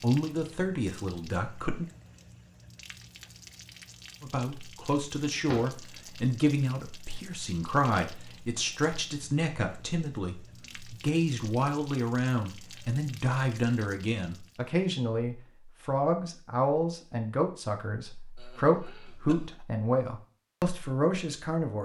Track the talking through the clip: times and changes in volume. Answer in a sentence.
The talking can be heard briefly from 0.0 to 1.9 s; and from 4.2 to 21.8 s, at a steady volume.